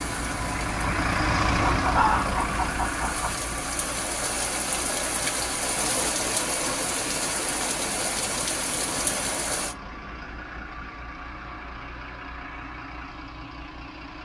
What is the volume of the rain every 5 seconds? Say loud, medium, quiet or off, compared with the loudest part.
medium, loud, off.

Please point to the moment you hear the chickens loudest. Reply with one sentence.
The loudest moment of the chickens is at 2 seconds.